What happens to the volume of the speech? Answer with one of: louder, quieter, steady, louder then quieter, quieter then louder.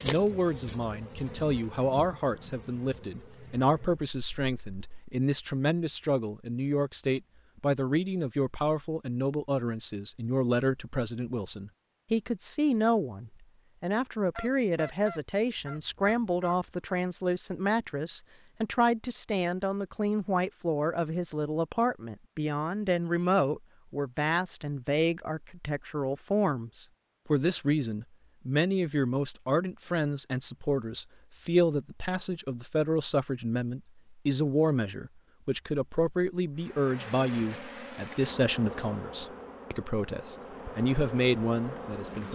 steady.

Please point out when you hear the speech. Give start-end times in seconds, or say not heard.
0.0-42.2.